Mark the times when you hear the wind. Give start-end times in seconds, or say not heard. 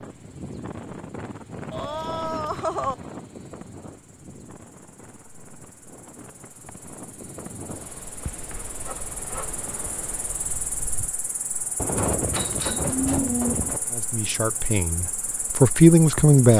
0.0-11.2.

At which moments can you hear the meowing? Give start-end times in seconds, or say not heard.
not heard.